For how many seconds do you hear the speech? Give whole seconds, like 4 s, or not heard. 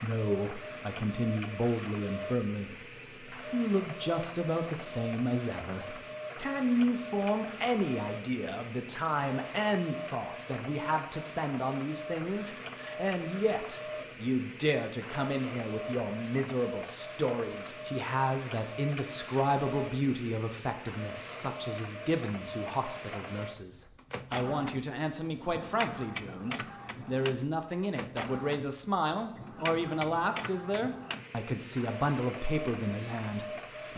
34 s.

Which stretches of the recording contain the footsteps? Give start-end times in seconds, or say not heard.
not heard.